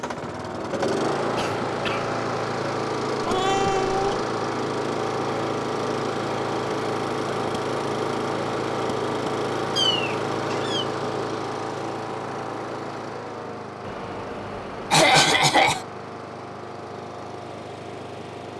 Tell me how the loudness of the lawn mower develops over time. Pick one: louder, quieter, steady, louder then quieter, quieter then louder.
quieter.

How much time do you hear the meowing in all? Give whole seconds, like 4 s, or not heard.
4 s.